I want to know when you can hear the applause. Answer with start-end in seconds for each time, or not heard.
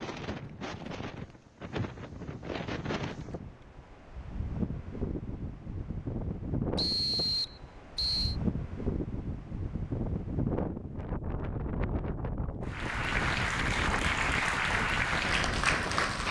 12.7-16.2.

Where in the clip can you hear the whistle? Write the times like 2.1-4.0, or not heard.
6.8-8.3.